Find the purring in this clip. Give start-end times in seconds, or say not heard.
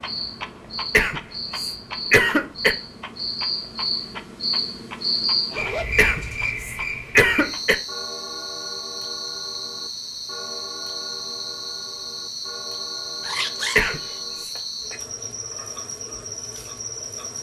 not heard.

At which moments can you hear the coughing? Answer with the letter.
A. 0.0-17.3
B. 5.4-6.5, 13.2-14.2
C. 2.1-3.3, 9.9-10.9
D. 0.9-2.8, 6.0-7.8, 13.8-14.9
D.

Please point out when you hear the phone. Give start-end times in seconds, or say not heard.
not heard.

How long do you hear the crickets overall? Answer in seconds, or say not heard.
17 s.